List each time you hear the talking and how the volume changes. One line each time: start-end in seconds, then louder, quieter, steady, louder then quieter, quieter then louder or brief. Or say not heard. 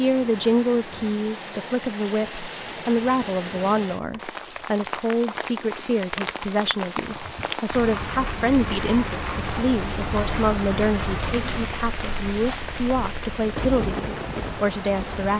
0.0-15.3 steady.